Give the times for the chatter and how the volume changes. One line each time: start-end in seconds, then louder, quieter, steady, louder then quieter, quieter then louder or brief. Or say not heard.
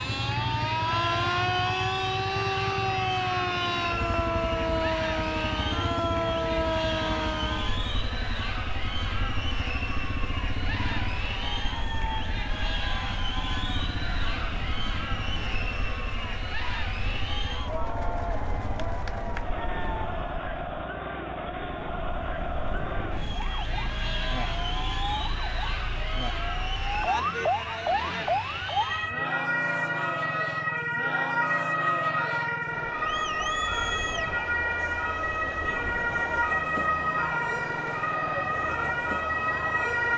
0.0-40.1 steady.